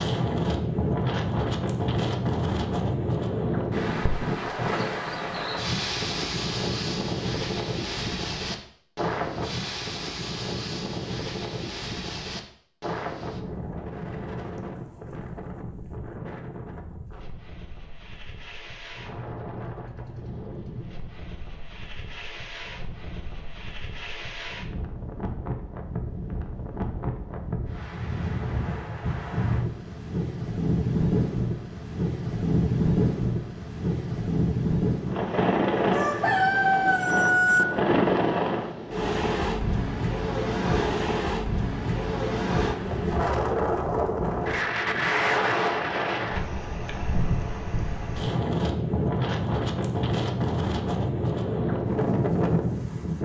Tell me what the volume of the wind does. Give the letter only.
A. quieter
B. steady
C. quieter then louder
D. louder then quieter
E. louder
C.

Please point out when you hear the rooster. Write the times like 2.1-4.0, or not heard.
35.9-37.6.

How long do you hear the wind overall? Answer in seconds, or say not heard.
53 s.